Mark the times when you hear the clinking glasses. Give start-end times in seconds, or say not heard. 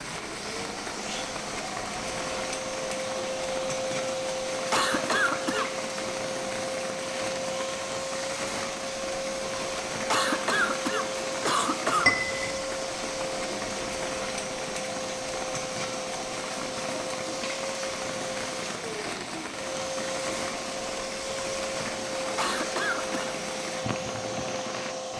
12.1-12.7.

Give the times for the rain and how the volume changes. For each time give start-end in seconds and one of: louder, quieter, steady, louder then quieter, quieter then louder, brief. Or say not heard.
0.0-25.1 steady.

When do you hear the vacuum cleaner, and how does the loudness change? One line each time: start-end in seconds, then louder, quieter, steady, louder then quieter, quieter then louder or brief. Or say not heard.
0.2-25.1 steady.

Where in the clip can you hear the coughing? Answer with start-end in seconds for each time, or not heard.
4.7-5.7, 10.1-12.3, 22.4-23.2.